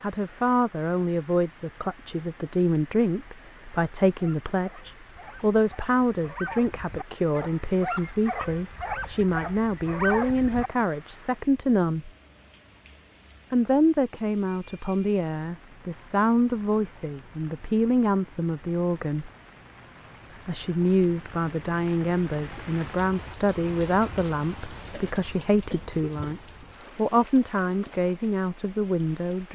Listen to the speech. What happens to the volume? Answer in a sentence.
The loudness of the speech stays about the same.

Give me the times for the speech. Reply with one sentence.
You can hear the speech from 0.0 to 12.1 s, from 13.5 to 19.3 s and from 20.4 to 29.5 s.